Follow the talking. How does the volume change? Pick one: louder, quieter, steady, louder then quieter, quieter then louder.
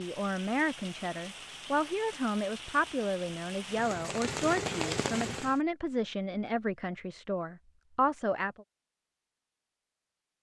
steady.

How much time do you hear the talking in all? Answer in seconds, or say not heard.
9 s.